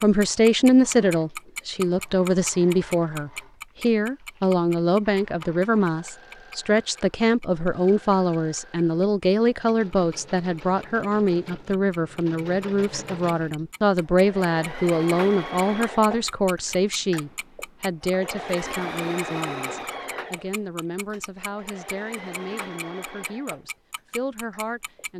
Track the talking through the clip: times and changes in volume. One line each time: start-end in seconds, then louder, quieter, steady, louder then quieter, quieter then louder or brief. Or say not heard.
0.0-25.1 quieter.